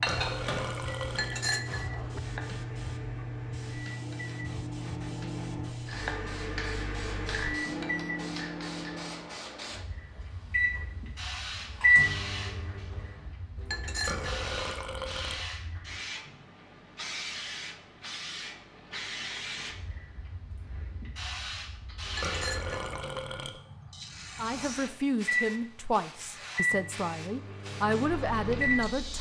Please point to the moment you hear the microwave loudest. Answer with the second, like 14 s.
12 s.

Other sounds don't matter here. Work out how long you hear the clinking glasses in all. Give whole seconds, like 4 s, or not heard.
3 s.